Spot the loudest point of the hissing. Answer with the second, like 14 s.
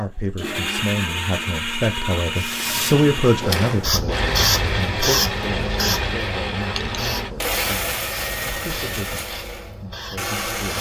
5 s.